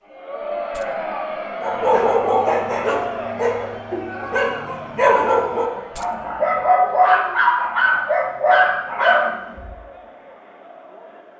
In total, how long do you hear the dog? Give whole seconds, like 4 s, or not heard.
8 s.